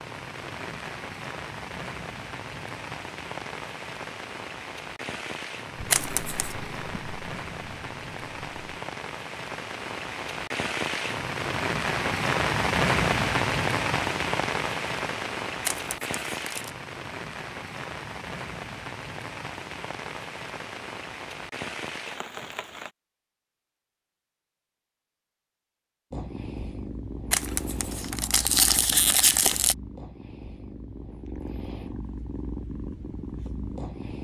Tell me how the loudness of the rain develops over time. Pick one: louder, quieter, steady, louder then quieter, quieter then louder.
louder then quieter.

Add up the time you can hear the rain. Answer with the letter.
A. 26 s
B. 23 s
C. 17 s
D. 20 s
B.